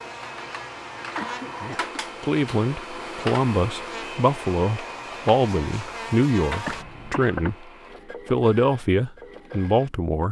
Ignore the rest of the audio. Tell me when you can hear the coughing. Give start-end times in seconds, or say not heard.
1.1-1.9, 6.7-7.5.